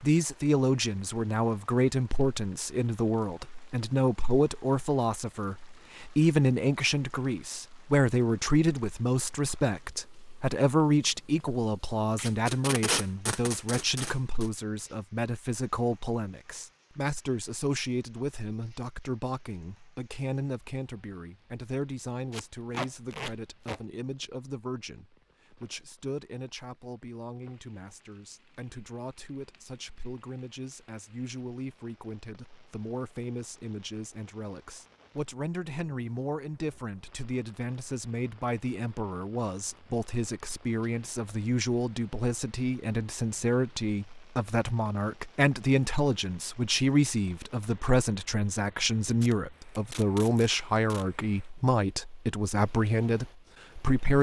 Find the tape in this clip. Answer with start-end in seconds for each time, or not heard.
12.2-14.5, 22.3-23.8, 49.1-51.0.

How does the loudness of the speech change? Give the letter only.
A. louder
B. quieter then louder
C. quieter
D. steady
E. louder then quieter
B.